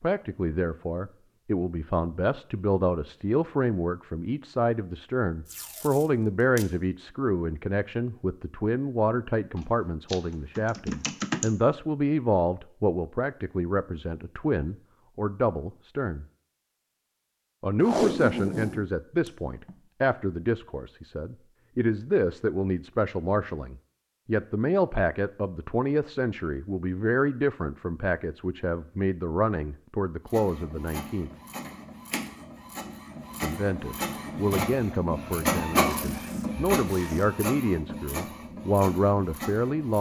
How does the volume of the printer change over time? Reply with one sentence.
The volume of the printer goes up, then down.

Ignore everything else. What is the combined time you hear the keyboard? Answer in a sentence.
The keyboard can be heard for 2 seconds in total.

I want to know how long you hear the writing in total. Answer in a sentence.
You can't hear the writing here.